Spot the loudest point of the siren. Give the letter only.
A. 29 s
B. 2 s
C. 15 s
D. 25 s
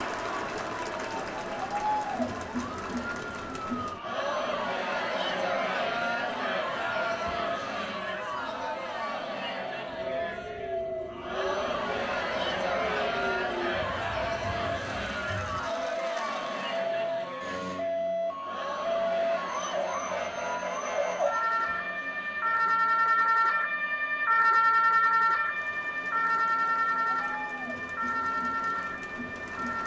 D.